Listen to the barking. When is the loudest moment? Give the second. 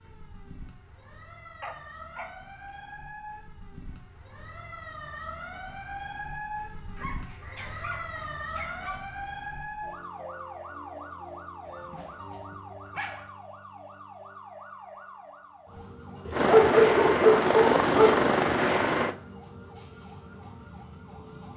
17 s.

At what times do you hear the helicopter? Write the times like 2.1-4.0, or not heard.
16.3-19.1.